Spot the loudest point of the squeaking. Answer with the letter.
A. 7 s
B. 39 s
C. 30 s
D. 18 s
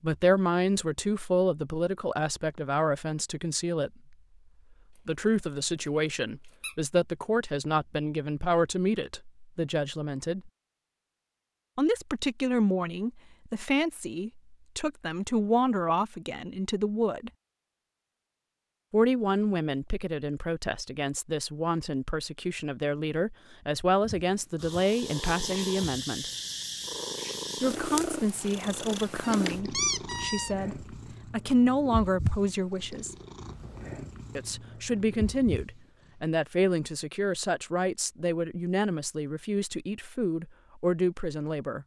C.